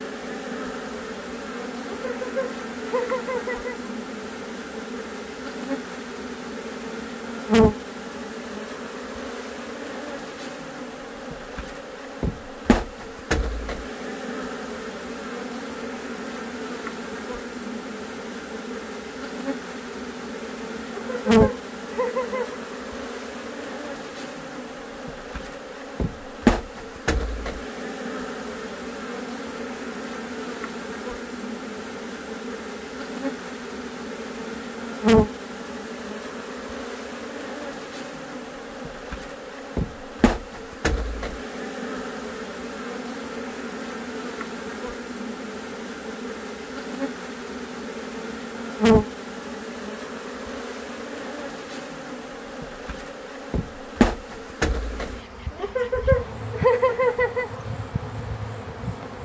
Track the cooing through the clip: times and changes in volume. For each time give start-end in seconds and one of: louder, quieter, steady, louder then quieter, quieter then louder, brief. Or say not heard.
not heard.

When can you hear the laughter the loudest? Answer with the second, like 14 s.
57 s.